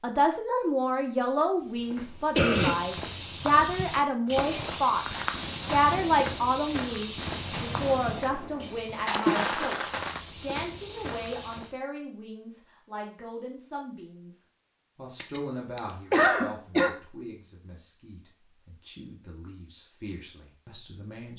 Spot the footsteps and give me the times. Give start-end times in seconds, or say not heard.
1.5-11.8.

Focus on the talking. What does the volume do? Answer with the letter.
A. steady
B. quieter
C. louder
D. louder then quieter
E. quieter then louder
B.